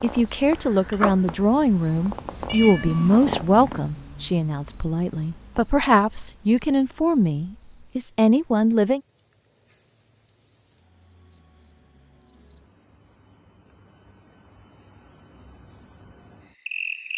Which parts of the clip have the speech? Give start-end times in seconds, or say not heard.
0.0-9.0.